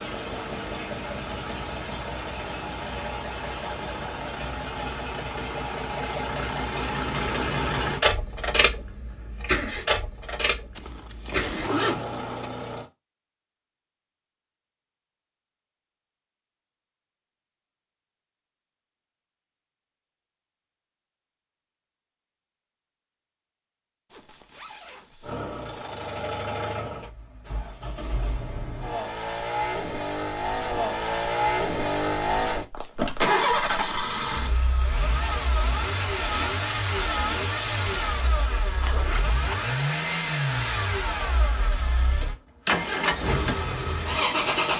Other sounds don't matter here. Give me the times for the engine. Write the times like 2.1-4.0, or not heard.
0.0-12.8, 25.2-44.7.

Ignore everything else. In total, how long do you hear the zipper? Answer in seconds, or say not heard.
4 s.